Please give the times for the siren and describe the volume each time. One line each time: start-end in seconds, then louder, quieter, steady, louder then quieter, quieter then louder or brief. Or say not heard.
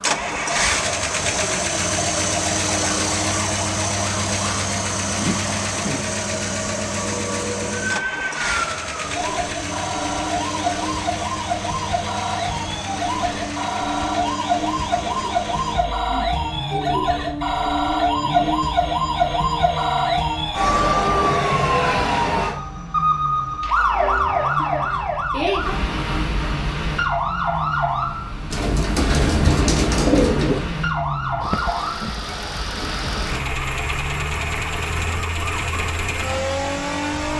0.0-37.3 louder then quieter.